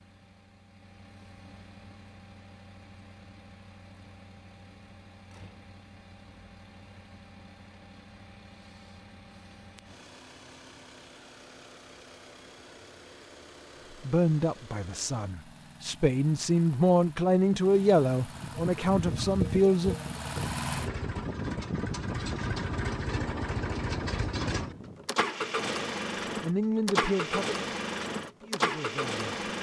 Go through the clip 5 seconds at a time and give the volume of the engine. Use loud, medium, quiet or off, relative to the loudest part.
quiet, quiet, quiet, quiet, loud, loud.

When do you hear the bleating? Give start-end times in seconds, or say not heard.
18.4-25.1.